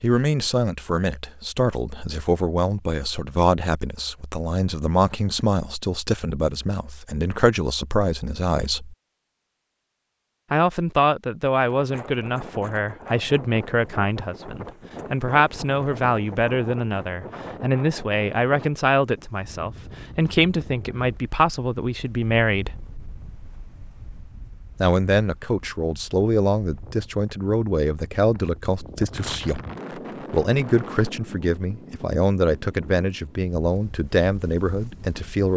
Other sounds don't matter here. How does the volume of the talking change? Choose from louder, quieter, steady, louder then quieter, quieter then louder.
steady.